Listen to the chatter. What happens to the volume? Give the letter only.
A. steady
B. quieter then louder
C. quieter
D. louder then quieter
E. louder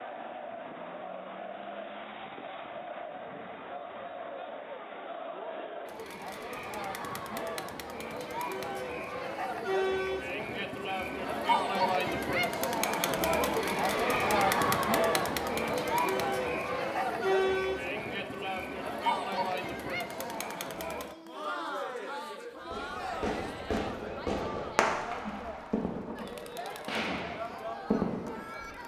D.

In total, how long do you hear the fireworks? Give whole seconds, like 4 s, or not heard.
6 s.